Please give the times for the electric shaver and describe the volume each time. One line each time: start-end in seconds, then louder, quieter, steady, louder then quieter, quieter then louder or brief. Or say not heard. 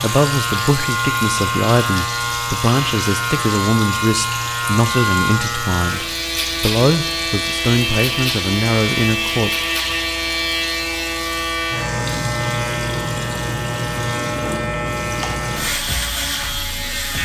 0.0-17.2 steady.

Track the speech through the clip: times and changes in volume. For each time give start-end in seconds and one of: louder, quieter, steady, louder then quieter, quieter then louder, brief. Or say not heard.
0.0-9.5 steady.